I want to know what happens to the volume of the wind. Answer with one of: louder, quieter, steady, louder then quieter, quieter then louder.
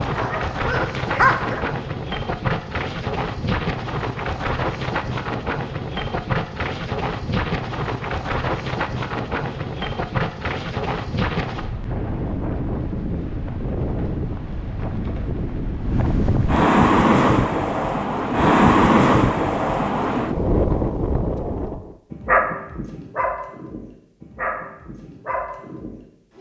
louder.